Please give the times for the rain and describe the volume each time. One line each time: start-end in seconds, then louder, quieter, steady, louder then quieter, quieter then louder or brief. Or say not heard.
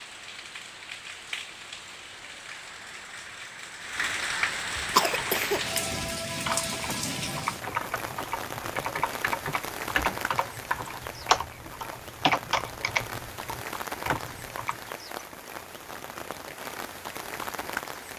0.0-18.1 louder then quieter.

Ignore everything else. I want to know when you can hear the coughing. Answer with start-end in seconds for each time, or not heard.
4.9-6.0.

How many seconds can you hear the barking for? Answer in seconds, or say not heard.
not heard.